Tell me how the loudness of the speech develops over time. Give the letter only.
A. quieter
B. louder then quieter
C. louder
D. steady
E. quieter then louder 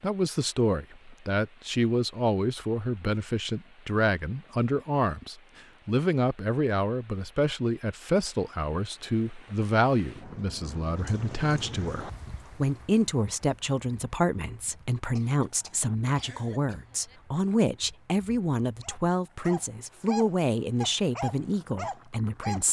D.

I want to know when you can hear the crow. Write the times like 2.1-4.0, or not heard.
not heard.